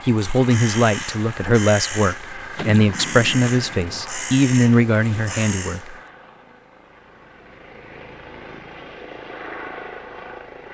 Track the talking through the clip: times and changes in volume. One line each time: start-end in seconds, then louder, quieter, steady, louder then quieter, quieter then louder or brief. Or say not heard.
0.0-6.0 steady.